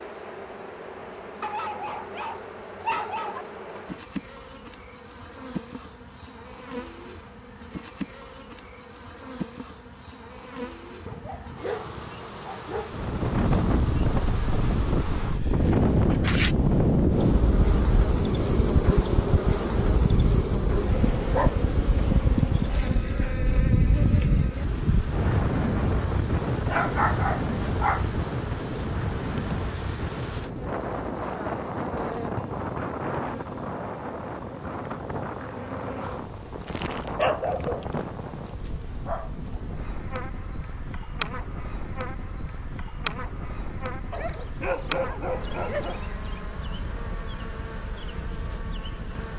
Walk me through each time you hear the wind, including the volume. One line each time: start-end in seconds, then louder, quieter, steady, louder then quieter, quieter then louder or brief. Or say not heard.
12.9-49.3 quieter.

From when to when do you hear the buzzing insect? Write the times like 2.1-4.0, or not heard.
0.0-49.3.